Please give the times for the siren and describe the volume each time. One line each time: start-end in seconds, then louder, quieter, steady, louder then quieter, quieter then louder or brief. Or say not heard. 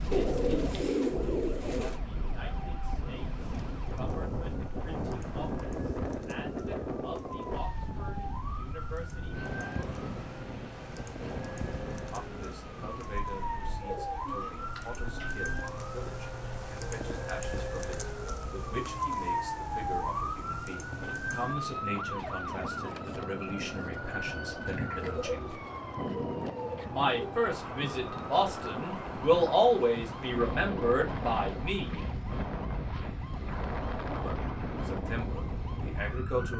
0.2-36.5 louder then quieter.